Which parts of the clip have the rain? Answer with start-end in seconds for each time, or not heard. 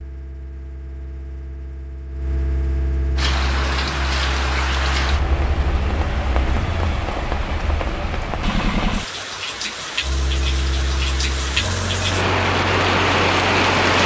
3.1-14.0.